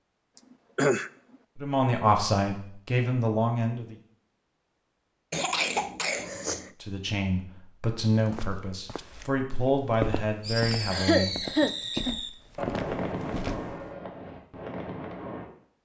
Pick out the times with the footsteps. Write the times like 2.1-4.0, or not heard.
8.1-13.6.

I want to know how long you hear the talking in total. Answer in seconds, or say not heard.
7 s.